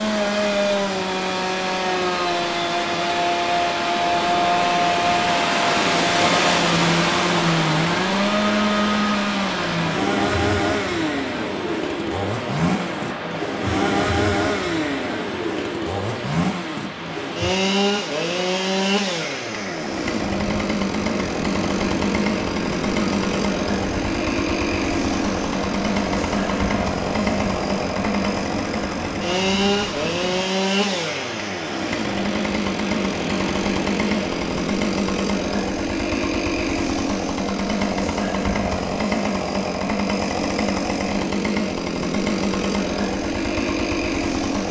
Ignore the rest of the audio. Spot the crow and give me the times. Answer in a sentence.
The crow can't be heard in this clip.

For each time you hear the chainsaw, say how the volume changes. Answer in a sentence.
The chainsaw can be heard from 0.0 to 44.6 s, at a steady volume.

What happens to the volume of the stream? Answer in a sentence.
The volume of the stream goes down.